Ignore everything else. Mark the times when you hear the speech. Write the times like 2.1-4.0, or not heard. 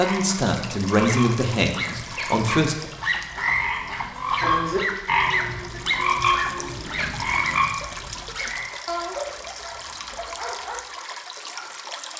0.0-2.8.